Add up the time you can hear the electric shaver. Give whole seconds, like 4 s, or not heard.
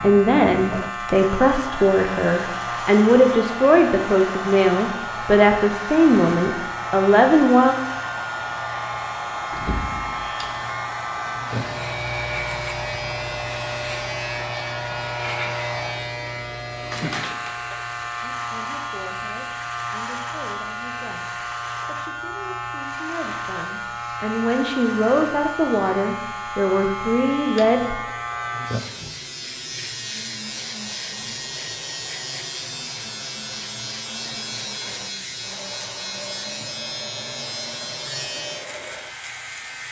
40 s.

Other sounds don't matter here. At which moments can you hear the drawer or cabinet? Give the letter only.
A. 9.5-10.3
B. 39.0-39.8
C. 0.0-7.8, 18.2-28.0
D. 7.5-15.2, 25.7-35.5
A.